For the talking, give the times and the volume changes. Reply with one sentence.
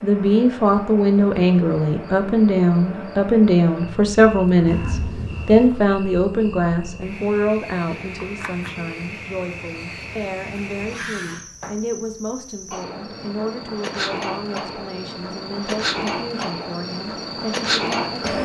The talking can be heard from 0.0 to 18.4 s, getting quieter.